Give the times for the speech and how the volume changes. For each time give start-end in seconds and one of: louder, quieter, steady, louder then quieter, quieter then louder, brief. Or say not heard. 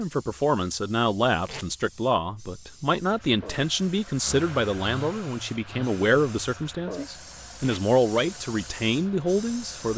0.0-9.9 steady.